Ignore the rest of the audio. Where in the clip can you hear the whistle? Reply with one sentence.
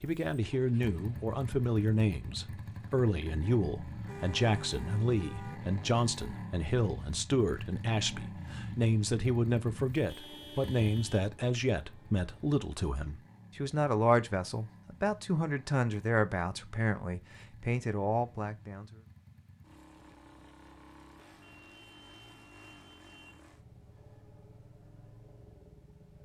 You can't hear the whistle here.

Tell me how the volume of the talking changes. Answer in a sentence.
The volume of the talking stays about the same.